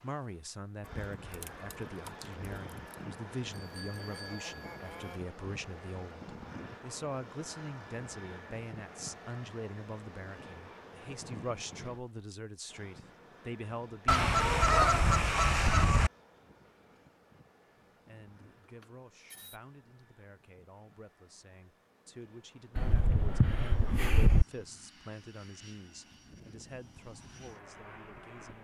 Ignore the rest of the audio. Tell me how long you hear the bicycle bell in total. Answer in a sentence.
You can hear the bicycle bell for 3 seconds altogether.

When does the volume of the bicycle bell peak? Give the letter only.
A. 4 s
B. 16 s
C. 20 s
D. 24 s
A.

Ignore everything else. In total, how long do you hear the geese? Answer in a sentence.
You can hear the geese for 6 seconds altogether.